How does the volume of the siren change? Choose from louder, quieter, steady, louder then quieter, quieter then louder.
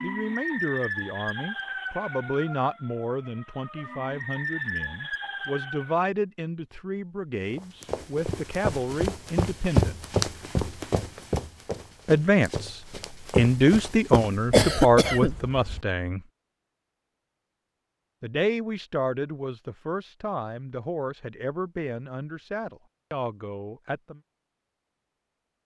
quieter then louder.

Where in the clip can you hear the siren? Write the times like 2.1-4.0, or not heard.
0.0-6.0.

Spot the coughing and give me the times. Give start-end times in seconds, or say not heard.
14.5-15.8.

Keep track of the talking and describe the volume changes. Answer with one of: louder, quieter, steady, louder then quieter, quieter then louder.
louder then quieter.